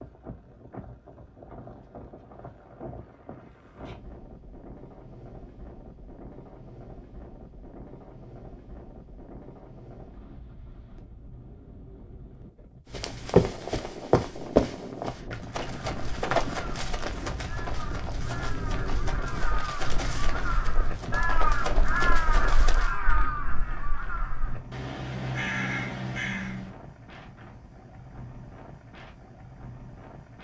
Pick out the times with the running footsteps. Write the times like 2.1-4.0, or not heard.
12.9-22.9.